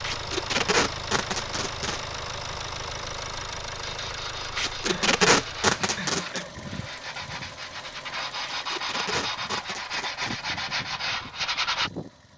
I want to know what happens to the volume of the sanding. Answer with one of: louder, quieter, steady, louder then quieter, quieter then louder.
louder.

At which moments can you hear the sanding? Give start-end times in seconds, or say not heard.
3.8-11.9.